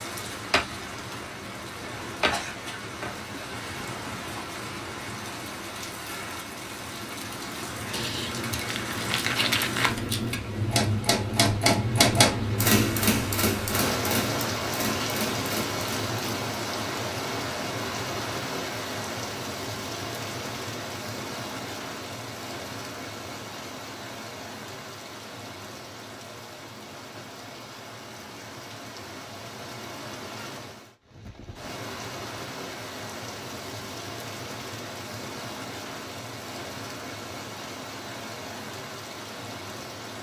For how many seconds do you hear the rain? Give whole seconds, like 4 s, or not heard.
40 s.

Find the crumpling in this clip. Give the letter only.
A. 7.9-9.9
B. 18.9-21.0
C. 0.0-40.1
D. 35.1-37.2
A.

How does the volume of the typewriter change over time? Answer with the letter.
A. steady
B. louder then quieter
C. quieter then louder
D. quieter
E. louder
B.